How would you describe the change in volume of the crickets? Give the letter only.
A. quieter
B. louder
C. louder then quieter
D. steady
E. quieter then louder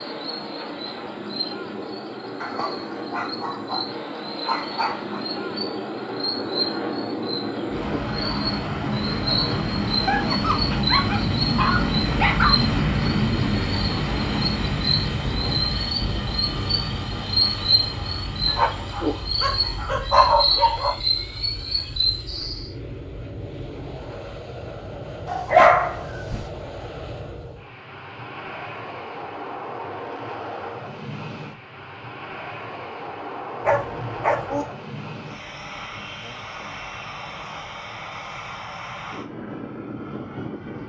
B.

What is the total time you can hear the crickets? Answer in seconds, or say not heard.
23 s.